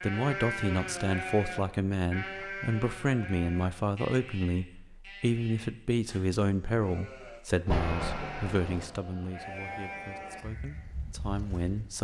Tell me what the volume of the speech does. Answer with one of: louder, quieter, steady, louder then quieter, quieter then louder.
quieter.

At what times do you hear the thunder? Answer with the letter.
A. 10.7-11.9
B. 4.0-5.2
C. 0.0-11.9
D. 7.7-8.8
D.